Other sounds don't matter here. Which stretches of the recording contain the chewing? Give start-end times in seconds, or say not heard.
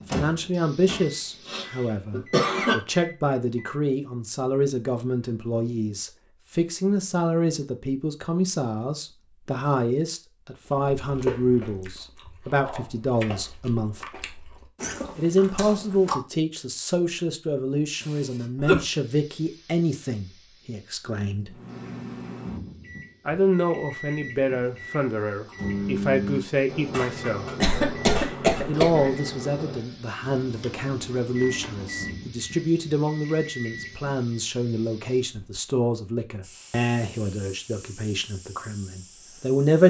10.7-16.2.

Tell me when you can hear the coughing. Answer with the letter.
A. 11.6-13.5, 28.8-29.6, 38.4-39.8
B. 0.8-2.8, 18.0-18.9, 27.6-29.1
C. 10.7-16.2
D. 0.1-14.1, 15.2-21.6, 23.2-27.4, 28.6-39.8
B.